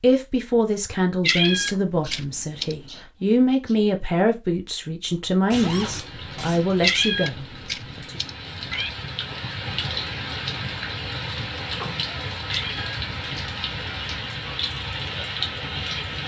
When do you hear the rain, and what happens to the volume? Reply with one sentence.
The rain can be heard from 5.5 to 16.2 s, getting louder.